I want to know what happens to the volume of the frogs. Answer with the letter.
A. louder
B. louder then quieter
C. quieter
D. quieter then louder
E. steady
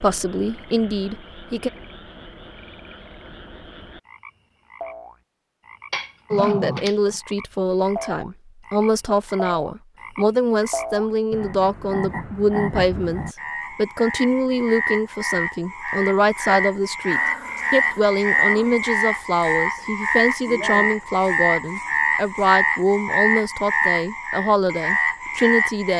A.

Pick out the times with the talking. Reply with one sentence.
You can hear the talking from 0.0 to 1.7 s and from 6.3 to 25.9 s.